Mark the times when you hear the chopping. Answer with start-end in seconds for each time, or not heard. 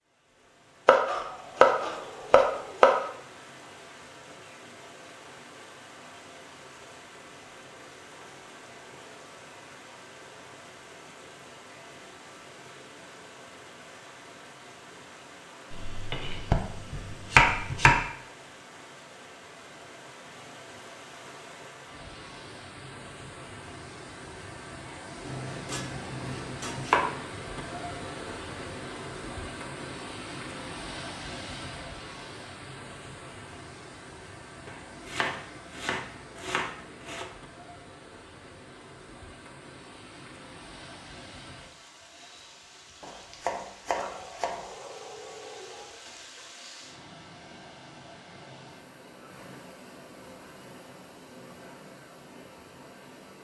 0.8-2.9, 15.7-18.0, 25.2-27.1, 34.6-37.2, 43.0-44.6.